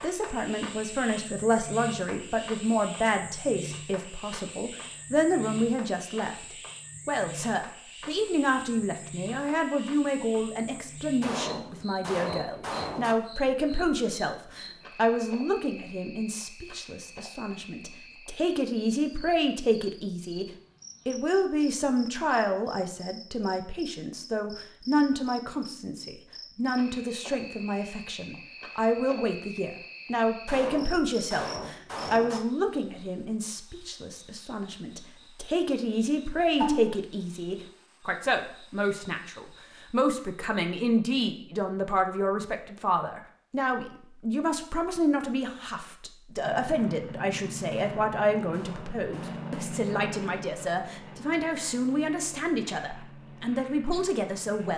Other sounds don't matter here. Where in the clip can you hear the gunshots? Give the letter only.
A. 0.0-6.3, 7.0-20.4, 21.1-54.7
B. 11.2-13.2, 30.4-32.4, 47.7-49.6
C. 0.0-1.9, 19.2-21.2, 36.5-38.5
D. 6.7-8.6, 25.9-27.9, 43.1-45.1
B.